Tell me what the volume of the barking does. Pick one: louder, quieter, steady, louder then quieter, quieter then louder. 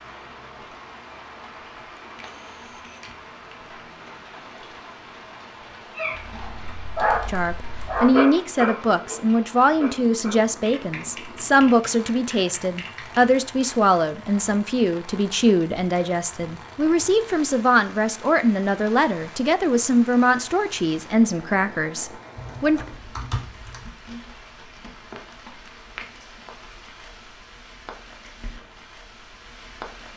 louder then quieter.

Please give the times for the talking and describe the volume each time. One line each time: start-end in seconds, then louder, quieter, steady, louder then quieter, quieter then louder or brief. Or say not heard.
7.2-22.9 steady.